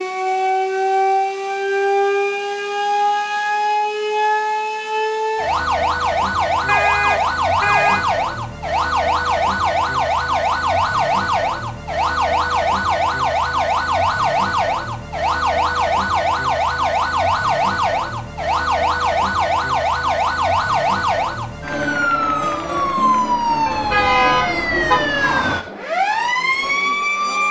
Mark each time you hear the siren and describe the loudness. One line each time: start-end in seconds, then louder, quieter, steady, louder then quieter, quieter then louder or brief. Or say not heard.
0.0-27.4 steady.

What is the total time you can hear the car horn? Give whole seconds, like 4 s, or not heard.
3 s.